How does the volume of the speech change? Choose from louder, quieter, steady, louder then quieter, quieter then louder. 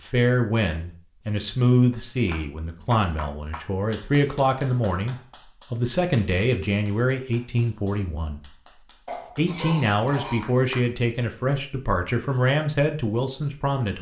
steady.